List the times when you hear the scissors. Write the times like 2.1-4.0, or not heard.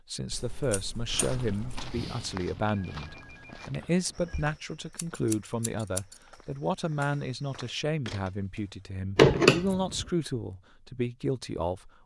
0.3-1.9, 4.3-6.2, 9.2-10.1.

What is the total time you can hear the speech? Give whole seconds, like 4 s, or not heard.
12 s.